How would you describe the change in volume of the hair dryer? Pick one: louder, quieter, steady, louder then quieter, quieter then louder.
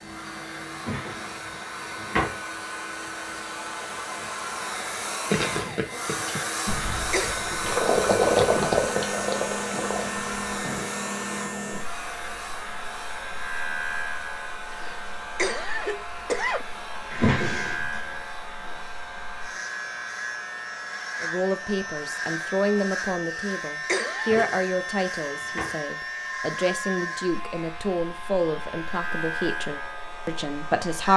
quieter.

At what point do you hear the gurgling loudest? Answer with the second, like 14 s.
8 s.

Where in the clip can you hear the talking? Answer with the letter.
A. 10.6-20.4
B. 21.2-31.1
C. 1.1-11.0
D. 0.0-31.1
B.